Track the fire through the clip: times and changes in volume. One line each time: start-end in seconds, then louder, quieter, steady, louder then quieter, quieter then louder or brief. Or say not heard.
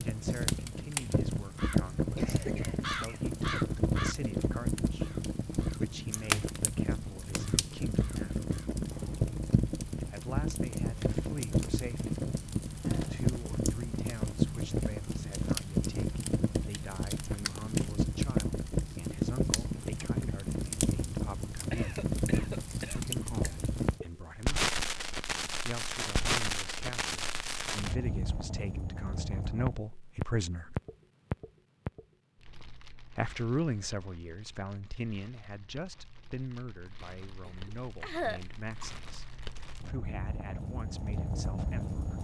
0.0-42.1 quieter.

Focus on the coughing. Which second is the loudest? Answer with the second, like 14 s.
38 s.